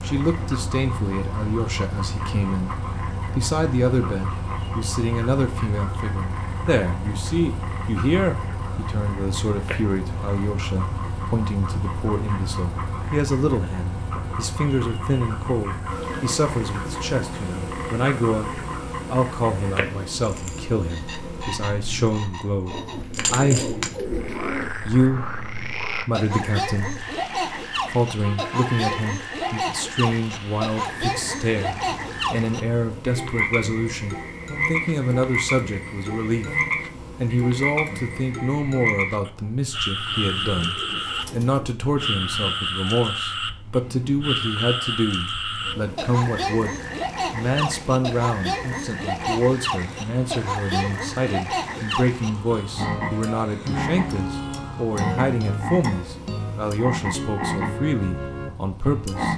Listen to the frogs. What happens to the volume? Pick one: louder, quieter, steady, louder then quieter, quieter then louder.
louder.